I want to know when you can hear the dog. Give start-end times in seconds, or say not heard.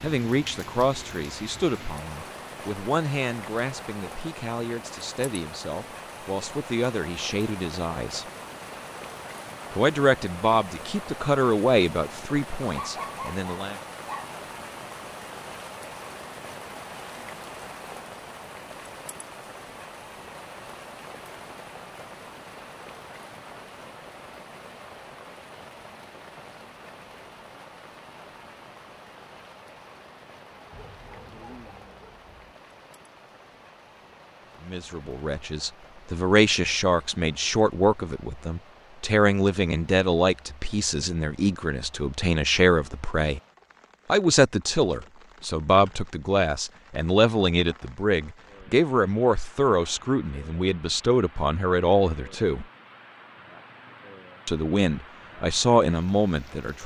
12.6-14.3, 30.5-32.5.